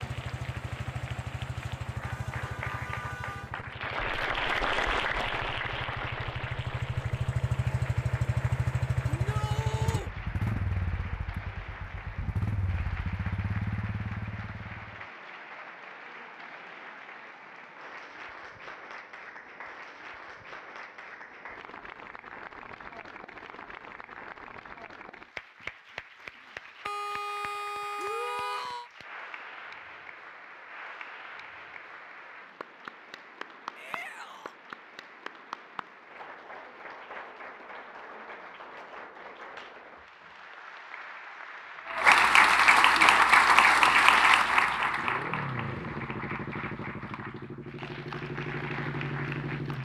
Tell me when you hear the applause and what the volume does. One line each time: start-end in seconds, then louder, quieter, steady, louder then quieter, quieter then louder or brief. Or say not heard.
0.0-49.8 quieter then louder.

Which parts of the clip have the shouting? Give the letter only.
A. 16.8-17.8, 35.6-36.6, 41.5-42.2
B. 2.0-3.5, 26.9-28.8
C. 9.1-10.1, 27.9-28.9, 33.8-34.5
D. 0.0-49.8
C.